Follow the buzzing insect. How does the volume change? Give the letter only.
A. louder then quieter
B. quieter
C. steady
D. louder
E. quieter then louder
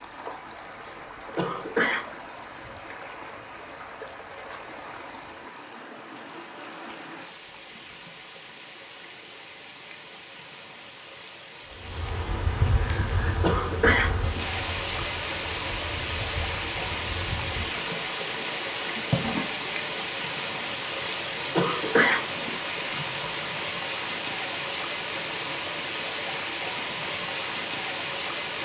E.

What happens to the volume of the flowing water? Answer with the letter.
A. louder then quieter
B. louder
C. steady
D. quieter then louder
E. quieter
B.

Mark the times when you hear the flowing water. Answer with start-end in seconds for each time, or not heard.
0.0-28.6.